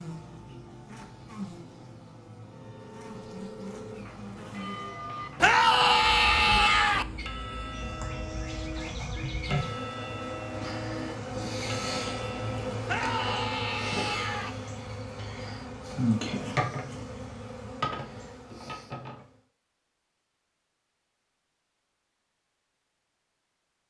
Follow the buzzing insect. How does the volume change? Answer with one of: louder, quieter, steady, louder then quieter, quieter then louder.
louder.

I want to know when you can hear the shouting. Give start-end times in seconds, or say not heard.
5.4-7.0, 12.8-14.5.